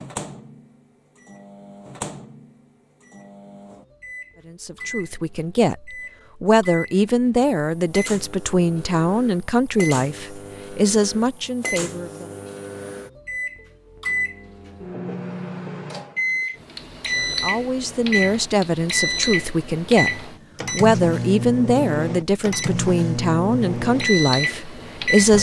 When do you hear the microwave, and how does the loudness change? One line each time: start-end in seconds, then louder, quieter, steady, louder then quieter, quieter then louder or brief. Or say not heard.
0.0-25.3 louder.